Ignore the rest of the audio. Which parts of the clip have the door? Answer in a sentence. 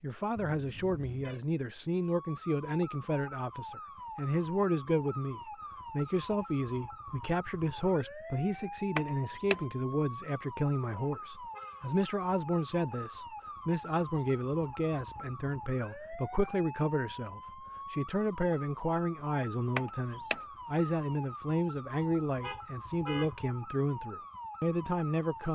You can hear the door from 8.9 to 9.6 s and from 19.8 to 20.4 s.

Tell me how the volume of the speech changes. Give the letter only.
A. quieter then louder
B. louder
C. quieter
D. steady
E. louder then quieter
D.